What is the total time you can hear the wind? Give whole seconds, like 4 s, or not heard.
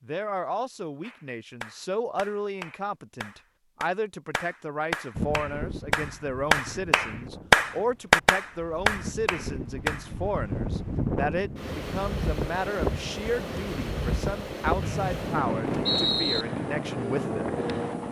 13 s.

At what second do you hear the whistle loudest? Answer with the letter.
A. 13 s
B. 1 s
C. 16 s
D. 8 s
C.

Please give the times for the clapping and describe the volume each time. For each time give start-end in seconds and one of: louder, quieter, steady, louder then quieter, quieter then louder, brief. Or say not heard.
1.0-10.1 louder.